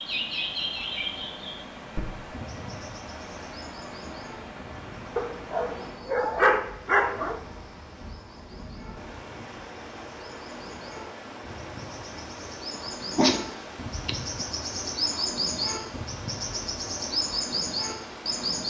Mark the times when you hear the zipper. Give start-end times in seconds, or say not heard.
not heard.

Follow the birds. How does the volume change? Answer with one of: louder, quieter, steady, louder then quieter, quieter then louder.
quieter then louder.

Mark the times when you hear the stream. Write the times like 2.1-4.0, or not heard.
0.0-18.6.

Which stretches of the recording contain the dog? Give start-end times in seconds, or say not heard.
5.2-7.4, 13.2-14.4.